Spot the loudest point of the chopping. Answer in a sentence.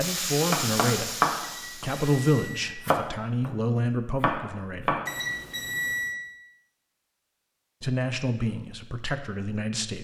The volume of the chopping peaks at 1 second.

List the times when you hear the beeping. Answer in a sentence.
You can hear the beeping from 1.4 to 2.8 s and from 5.0 to 6.2 s.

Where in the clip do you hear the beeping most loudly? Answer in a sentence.
The loudest moment of the beeping is at 6 seconds.